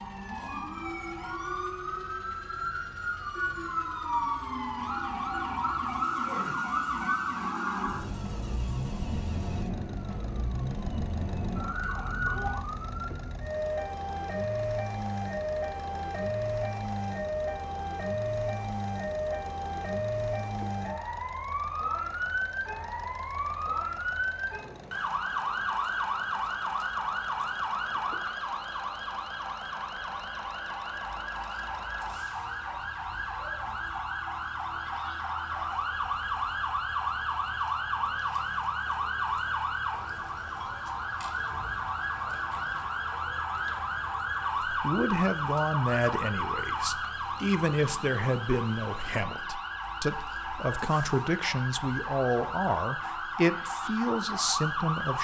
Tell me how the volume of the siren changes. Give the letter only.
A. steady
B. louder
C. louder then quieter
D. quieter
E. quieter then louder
A.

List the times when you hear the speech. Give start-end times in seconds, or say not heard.
44.6-55.1.